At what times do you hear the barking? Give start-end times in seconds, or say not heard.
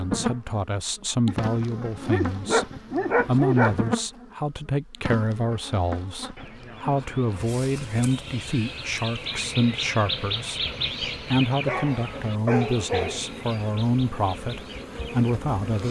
1.2-3.8, 11.7-13.2.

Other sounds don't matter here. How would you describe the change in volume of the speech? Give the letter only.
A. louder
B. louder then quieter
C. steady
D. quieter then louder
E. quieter
C.